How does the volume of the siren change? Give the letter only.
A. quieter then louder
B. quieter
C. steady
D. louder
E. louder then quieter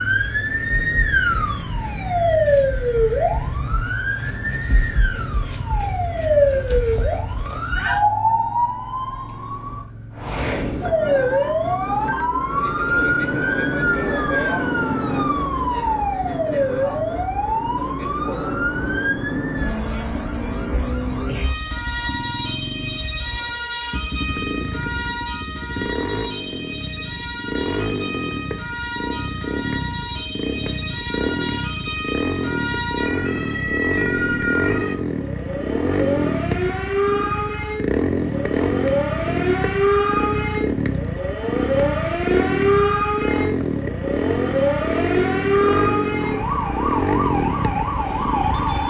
A.